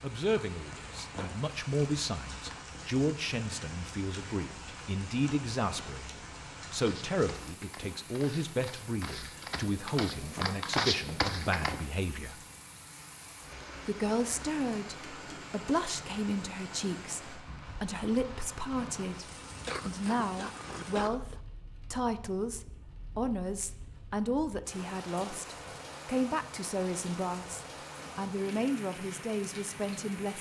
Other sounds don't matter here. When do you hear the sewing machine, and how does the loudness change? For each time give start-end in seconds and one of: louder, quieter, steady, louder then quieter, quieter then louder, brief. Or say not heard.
not heard.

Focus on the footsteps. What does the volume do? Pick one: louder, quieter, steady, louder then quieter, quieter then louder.
louder.